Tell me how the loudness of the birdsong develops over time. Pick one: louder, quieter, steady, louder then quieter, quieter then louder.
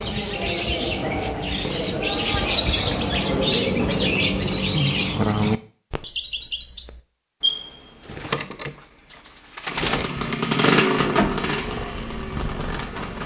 quieter.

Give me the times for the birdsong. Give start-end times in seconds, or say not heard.
0.0-13.2.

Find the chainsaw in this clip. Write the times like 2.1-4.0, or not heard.
9.7-13.2.